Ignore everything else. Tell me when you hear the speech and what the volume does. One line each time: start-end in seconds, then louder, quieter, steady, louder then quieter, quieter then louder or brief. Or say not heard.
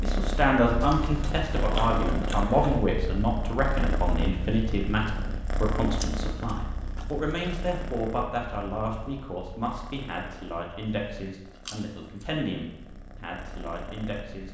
0.0-14.4 quieter.